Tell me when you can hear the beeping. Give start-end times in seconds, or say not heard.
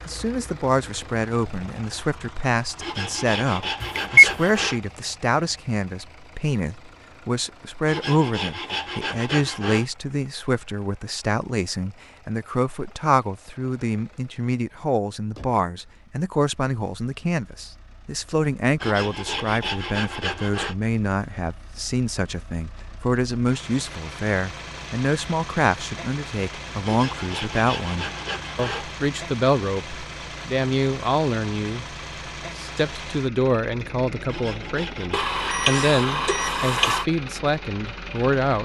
3.8-4.2, 35.1-37.0.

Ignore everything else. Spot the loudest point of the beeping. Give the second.
4 s.